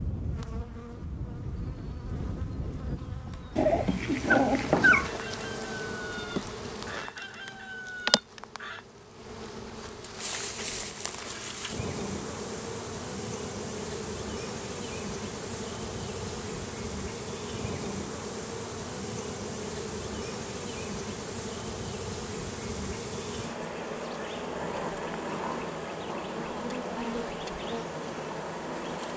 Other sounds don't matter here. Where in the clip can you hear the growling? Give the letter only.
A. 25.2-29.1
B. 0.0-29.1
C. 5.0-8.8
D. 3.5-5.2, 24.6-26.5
D.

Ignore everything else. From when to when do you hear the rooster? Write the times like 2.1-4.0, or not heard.
5.0-8.8.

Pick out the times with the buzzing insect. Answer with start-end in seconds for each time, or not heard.
0.0-29.1.